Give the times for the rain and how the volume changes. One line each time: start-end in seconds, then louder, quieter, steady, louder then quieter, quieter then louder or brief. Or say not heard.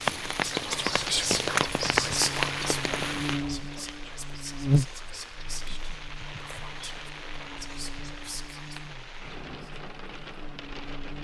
0.0-11.1 quieter.